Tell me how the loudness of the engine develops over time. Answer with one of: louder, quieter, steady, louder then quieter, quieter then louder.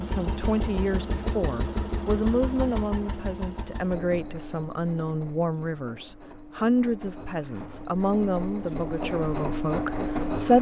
quieter then louder.